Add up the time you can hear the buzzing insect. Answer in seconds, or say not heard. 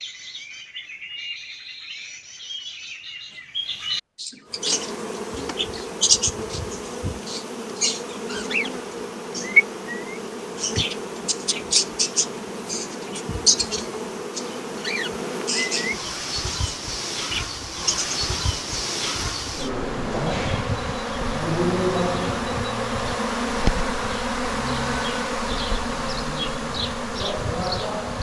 24 s.